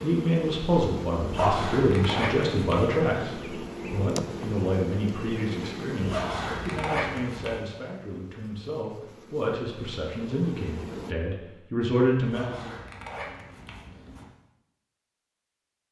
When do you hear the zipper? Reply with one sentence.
You can hear the zipper from 1.2 to 3.0 s, from 6.0 to 7.6 s and from 12.2 to 14.2 s.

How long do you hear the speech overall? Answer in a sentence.
The speech can be heard for 13 seconds in total.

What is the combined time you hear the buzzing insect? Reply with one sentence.
You can hear the buzzing insect for 11 seconds altogether.